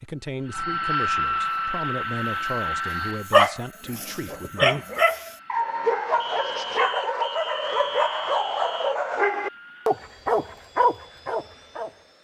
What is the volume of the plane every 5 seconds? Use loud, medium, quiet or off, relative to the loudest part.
loud, quiet, quiet.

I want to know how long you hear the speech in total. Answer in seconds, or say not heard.
5 s.